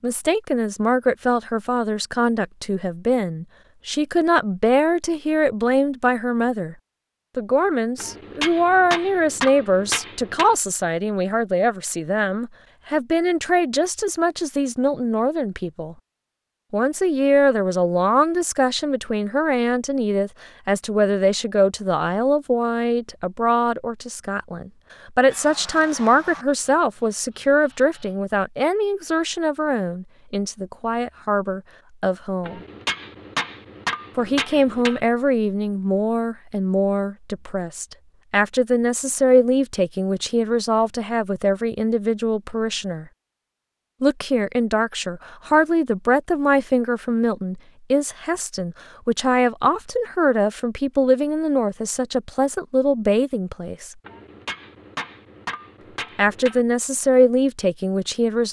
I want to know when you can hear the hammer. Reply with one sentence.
You can hear the hammer from 8.0 to 10.6 s, from 32.5 to 35.0 s and from 54.0 to 56.6 s.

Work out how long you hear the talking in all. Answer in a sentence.
You can hear the talking for 52 seconds altogether.